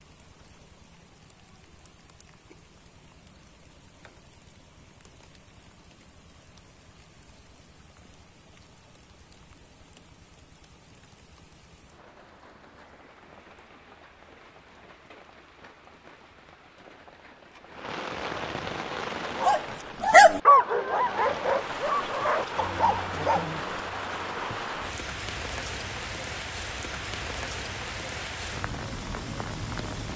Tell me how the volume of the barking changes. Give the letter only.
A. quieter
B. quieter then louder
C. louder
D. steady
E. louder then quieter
E.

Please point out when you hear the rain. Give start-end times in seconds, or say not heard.
0.0-30.1.